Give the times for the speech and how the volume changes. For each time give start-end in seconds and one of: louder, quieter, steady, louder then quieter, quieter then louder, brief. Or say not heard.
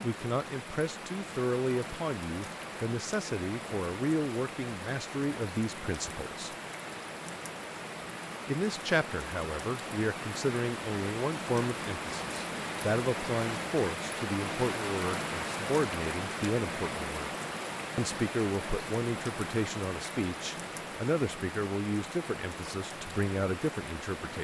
0.0-6.5 steady
8.4-17.3 steady
17.9-24.3 steady.